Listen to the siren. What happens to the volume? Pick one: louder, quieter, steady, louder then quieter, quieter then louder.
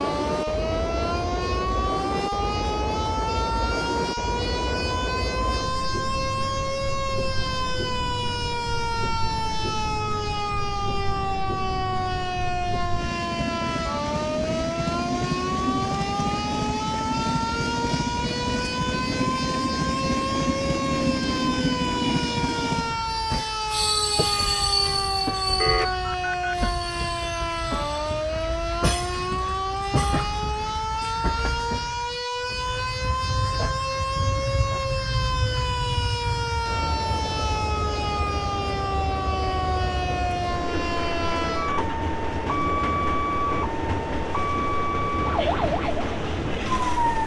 steady.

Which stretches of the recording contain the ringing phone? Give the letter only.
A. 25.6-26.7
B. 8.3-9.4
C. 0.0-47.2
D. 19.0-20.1
A.